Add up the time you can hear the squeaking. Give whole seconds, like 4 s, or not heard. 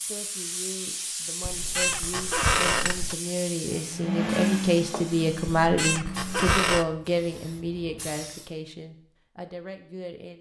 3 s.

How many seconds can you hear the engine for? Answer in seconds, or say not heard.
3 s.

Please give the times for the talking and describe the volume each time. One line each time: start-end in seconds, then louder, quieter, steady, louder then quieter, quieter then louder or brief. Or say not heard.
0.0-10.3 louder then quieter.